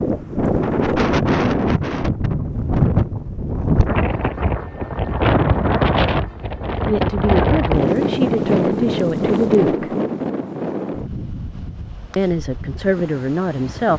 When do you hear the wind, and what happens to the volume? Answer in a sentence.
The wind can be heard from 0.0 to 13.9 s, getting quieter.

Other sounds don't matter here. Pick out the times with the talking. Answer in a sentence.
The talking can be heard from 6.8 to 9.9 s and from 12.2 to 13.9 s.